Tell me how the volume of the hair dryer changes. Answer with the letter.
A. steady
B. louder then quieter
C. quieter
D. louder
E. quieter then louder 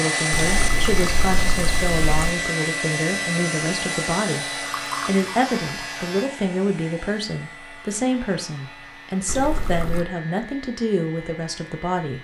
C.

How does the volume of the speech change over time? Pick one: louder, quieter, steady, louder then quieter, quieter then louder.
steady.